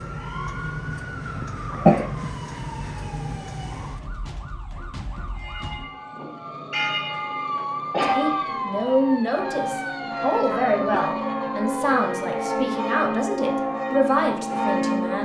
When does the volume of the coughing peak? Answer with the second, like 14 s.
2 s.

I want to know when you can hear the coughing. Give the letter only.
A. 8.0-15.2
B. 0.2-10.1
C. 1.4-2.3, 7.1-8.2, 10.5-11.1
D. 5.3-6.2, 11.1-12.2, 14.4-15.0
C.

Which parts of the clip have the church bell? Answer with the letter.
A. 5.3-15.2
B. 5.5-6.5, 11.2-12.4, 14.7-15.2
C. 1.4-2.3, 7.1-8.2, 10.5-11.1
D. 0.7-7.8
A.